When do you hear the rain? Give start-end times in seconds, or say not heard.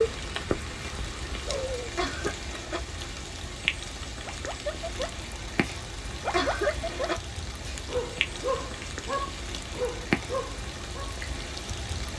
0.0-12.1.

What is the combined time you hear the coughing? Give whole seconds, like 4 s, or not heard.
2 s.